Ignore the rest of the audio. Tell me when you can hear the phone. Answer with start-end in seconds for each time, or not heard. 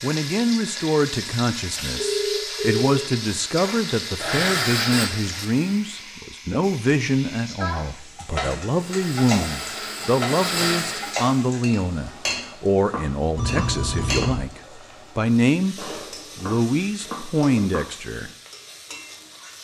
1.9-3.0, 13.3-14.3.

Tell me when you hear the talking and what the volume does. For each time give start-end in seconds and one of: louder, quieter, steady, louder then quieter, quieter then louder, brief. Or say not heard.
0.0-18.3 steady.